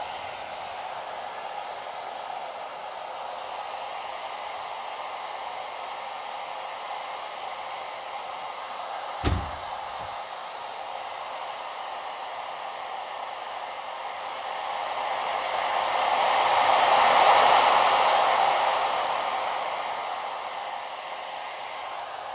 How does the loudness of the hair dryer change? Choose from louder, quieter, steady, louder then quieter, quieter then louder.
louder.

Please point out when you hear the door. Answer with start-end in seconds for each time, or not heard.
9.2-10.1.